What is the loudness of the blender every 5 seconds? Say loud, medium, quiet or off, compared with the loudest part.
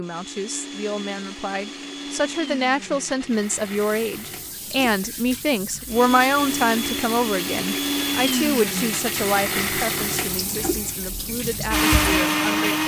quiet, loud, loud.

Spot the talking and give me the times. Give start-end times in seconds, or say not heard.
0.0-12.8.